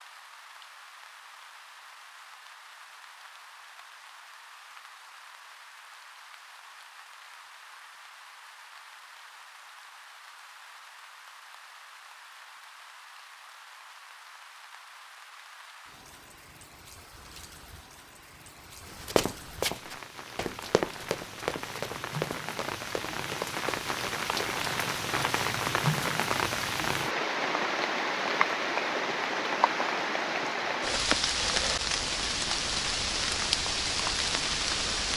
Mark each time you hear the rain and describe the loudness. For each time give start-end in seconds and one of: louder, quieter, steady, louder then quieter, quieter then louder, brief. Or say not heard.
0.0-35.1 louder.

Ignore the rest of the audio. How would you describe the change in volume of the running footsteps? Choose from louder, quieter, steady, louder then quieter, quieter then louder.
quieter.